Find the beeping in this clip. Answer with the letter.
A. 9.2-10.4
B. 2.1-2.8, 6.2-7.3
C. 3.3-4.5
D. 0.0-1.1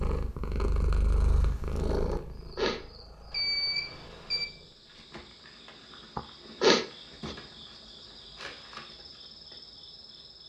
C.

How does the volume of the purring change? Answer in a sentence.
The volume of the purring goes down.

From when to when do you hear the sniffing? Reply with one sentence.
You can hear the sniffing from 2.1 to 2.8 s and from 6.2 to 7.3 s.